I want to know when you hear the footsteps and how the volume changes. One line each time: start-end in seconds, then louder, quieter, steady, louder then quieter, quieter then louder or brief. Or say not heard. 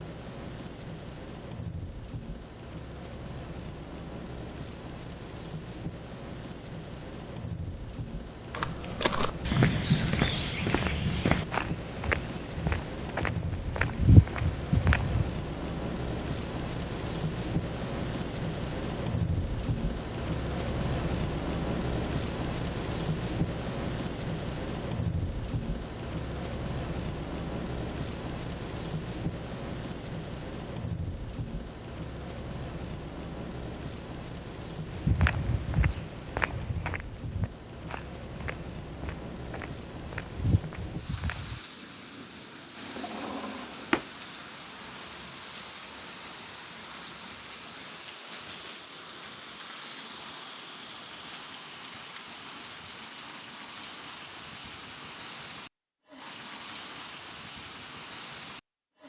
8.5-15.3 quieter then louder
34.9-41.6 quieter then louder.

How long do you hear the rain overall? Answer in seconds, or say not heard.
59 s.